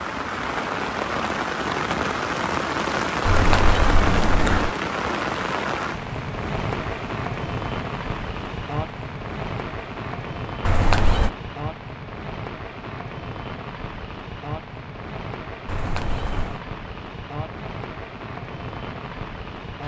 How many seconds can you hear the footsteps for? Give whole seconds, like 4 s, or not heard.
not heard.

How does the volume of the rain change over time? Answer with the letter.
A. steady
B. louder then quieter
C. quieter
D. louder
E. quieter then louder
C.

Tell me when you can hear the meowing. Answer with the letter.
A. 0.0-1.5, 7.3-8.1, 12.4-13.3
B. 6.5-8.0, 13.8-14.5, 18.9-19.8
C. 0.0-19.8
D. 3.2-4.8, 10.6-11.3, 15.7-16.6
D.